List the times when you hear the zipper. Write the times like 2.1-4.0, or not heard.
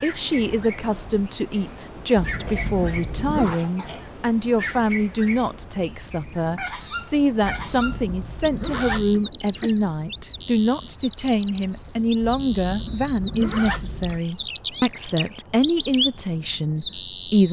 2.1-3.6, 7.4-9.2, 12.2-14.2.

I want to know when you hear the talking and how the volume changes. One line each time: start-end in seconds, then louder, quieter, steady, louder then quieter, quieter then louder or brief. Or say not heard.
0.0-17.4 steady.